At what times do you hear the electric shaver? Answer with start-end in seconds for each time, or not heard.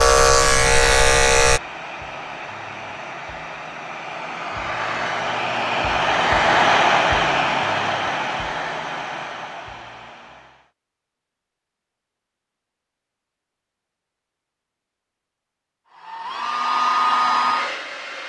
0.0-1.6.